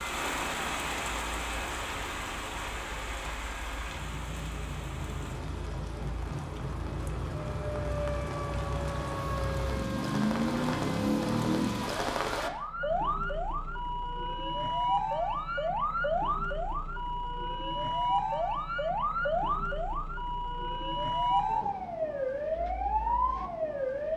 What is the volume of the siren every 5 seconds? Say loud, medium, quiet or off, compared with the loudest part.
off, medium, loud, loud, loud.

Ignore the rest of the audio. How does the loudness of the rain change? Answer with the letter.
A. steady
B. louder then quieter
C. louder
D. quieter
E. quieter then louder
E.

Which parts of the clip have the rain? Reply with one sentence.
You can hear the rain from 0.0 to 12.5 s.